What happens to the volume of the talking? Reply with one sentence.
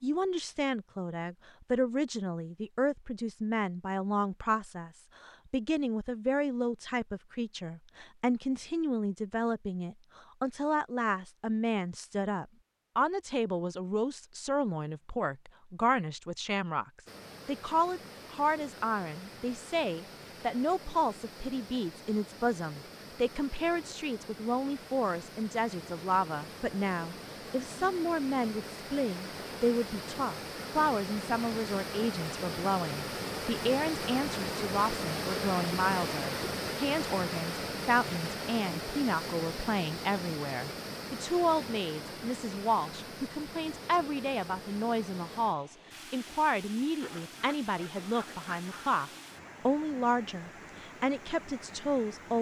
The loudness of the talking stays about the same.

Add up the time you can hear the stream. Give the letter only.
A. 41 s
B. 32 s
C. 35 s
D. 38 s
C.